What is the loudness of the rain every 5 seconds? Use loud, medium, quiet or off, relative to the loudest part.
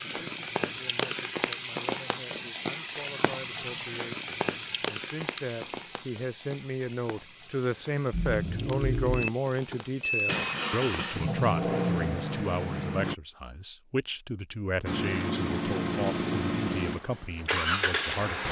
loud, medium, quiet, off.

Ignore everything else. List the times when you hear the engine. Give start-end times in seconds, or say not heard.
8.1-13.2, 14.8-18.4.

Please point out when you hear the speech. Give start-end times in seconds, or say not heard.
0.0-18.4.